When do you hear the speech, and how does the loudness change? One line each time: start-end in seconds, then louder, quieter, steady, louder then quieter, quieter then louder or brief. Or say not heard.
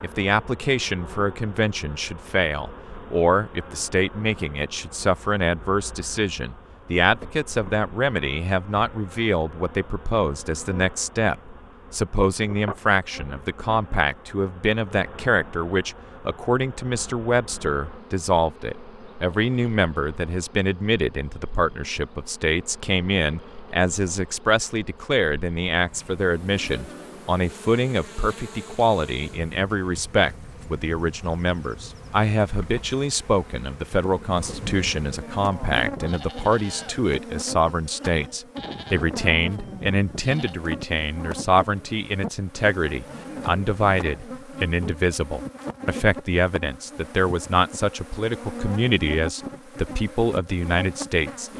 0.0-51.5 steady.